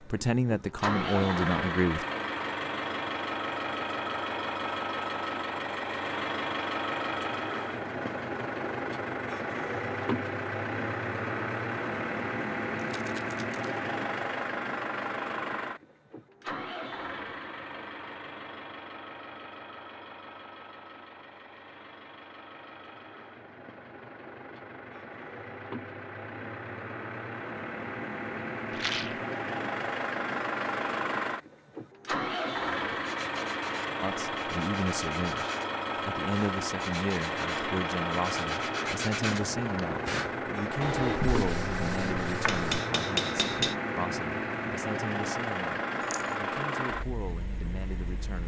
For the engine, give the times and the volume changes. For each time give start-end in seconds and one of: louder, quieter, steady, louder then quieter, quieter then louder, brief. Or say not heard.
0.0-48.4 quieter then louder.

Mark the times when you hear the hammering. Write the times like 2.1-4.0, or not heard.
42.3-43.8.